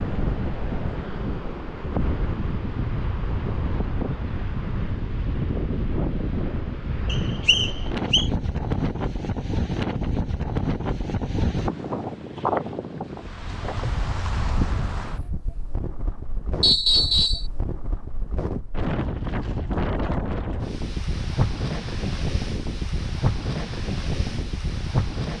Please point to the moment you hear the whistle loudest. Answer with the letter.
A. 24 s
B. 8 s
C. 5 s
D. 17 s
D.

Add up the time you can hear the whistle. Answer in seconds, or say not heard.
2 s.